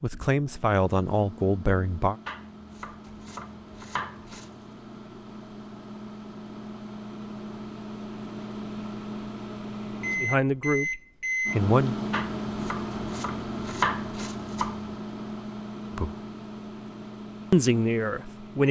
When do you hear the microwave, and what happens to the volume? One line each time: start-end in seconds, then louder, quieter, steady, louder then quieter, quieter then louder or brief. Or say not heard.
0.0-18.6 louder then quieter.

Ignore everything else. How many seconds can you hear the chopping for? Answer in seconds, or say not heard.
5 s.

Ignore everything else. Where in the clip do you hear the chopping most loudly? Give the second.
14 s.